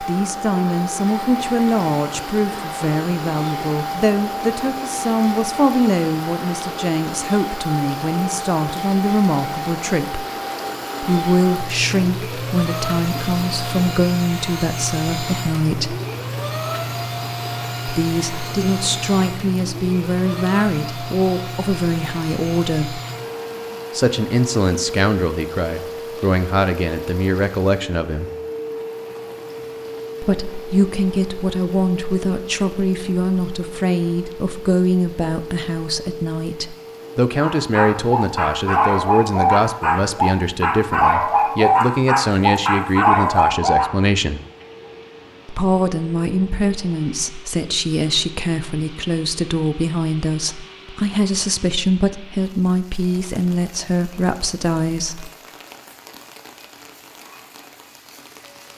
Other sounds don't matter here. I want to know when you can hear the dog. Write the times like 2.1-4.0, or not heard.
37.4-43.9.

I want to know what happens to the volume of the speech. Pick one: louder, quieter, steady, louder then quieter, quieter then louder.
steady.